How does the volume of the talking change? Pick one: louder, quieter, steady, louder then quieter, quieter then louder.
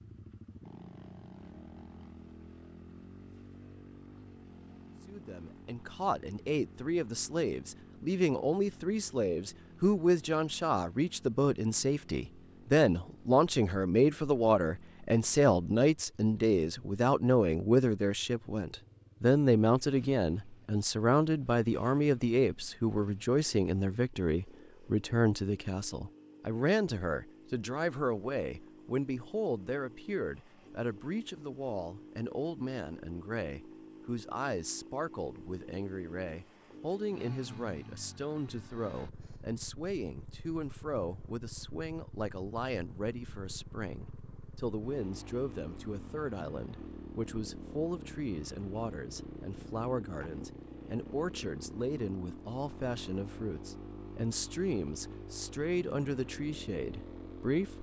quieter.